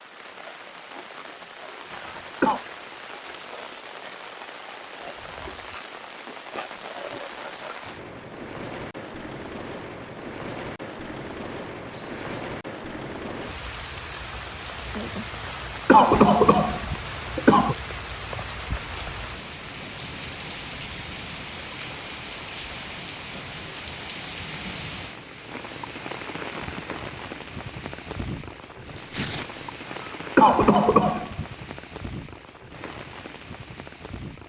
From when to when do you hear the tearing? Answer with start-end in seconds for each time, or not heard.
1.9-3.6, 11.9-12.4, 28.8-29.5.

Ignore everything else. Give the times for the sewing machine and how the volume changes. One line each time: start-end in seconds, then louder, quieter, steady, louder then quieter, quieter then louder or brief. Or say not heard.
not heard.